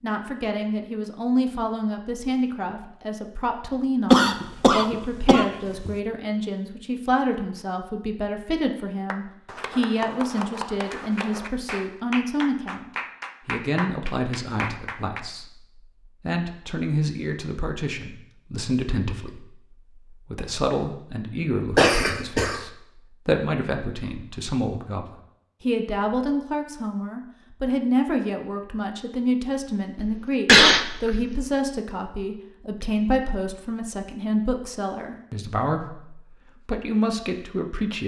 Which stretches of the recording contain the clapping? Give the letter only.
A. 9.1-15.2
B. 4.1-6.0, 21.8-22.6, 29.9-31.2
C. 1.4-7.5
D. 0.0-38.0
A.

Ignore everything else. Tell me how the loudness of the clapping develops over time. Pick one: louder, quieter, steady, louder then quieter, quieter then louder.
steady.